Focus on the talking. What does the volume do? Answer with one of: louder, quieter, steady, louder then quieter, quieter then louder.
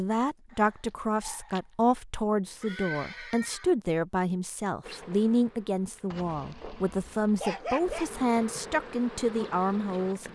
steady.